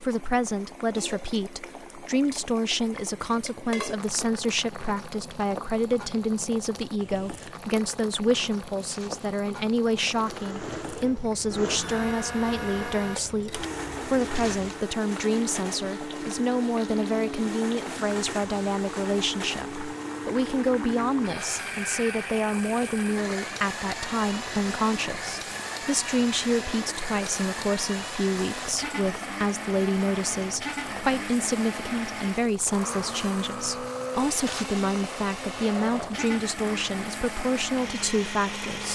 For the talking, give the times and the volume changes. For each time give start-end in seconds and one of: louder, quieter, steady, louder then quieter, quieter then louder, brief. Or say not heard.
0.0-38.9 steady.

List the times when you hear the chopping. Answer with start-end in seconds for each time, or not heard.
not heard.